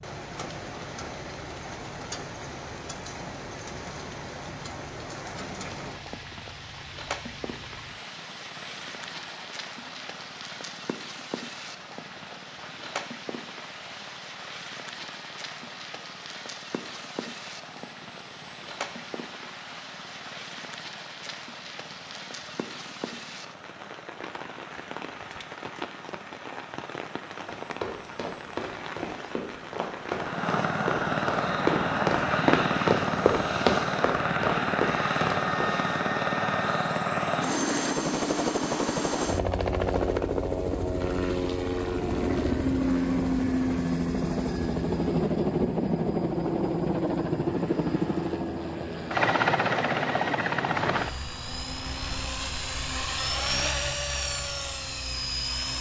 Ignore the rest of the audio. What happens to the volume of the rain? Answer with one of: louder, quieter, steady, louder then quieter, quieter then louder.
steady.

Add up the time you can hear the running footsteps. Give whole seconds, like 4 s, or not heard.
8 s.